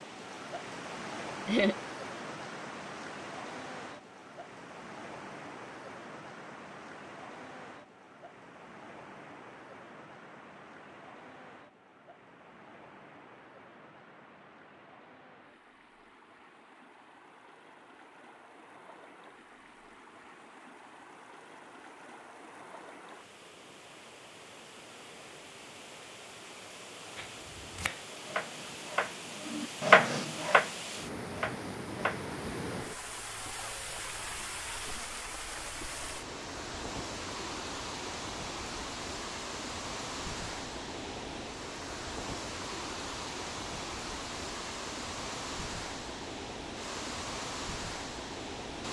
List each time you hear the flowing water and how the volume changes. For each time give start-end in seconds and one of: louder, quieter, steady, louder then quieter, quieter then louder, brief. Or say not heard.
0.0-48.8 quieter then louder.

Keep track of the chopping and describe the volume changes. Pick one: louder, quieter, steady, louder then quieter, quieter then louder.
louder then quieter.